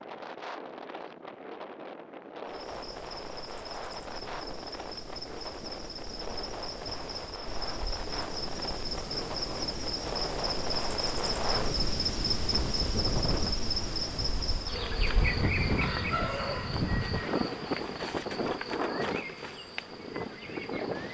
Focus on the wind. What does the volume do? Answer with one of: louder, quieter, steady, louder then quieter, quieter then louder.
louder.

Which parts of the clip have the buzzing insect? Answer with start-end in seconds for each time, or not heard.
2.5-21.0.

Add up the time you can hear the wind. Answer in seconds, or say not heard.
21 s.